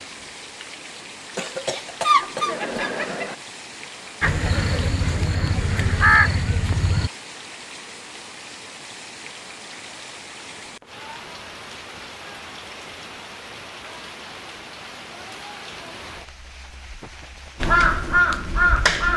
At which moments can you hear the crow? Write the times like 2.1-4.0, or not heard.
4.2-7.1, 17.6-19.1.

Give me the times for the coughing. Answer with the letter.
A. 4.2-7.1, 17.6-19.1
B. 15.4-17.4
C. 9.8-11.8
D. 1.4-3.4
D.